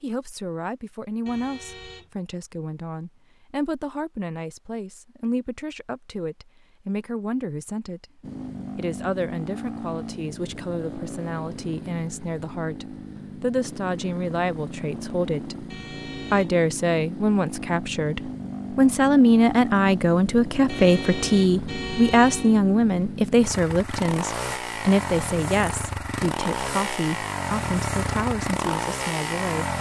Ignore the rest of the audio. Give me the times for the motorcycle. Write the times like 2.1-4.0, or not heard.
8.2-29.7.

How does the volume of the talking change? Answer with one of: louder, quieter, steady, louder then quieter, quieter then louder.
louder then quieter.